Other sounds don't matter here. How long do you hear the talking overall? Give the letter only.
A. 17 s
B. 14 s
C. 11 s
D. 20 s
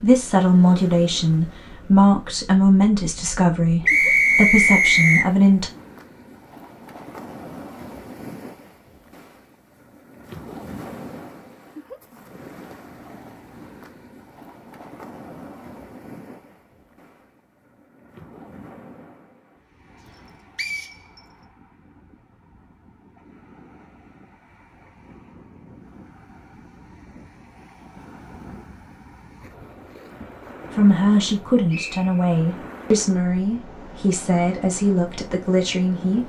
C.